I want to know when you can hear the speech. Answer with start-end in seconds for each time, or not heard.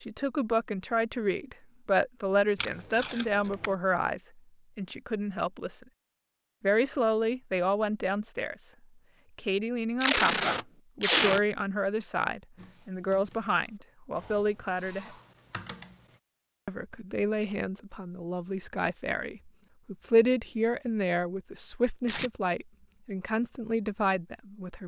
0.0-5.8, 6.6-8.7, 9.3-15.2, 16.6-24.8.